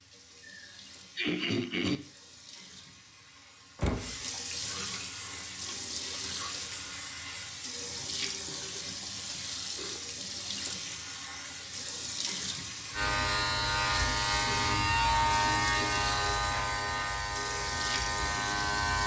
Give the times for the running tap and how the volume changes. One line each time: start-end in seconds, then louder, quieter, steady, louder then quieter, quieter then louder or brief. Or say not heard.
0.0-19.0 louder.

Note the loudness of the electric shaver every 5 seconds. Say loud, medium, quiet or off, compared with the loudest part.
off, off, loud, loud.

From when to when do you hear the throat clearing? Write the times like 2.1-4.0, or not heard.
0.5-2.0.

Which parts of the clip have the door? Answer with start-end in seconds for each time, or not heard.
3.8-4.2.